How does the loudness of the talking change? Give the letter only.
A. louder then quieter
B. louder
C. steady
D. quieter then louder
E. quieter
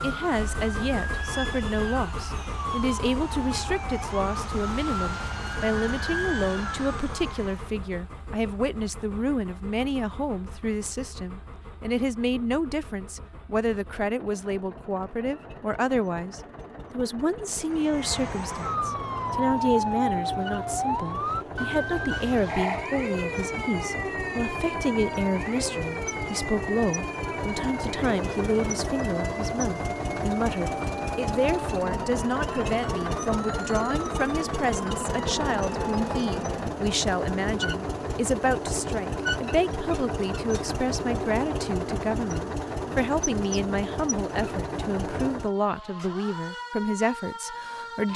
C.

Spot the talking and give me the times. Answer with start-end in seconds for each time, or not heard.
0.0-48.1.